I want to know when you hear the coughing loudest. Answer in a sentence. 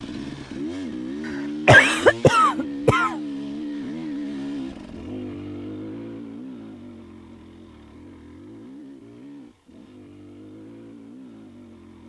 The loudest moment of the coughing is at 2 seconds.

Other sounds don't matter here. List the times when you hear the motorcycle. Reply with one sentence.
You can hear the motorcycle from 0.0 to 12.0 s.